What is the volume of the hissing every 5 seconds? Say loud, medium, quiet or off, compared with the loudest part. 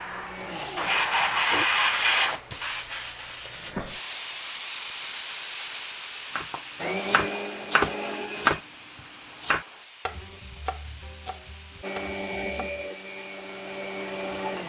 loud, medium, quiet.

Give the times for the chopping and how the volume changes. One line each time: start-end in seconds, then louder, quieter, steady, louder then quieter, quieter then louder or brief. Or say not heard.
6.3-12.8 quieter.